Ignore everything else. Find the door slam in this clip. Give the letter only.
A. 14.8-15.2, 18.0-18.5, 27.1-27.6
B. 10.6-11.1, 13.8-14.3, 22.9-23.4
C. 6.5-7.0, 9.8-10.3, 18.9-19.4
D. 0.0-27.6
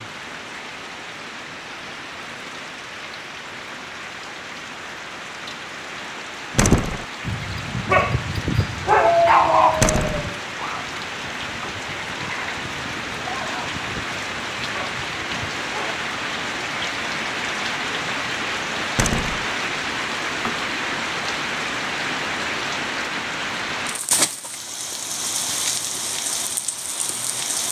C.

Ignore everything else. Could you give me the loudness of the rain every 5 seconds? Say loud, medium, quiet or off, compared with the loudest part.
medium, medium, loud, loud, loud, loud.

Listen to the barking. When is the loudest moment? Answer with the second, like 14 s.
9 s.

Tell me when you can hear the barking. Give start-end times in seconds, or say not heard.
6.5-15.9.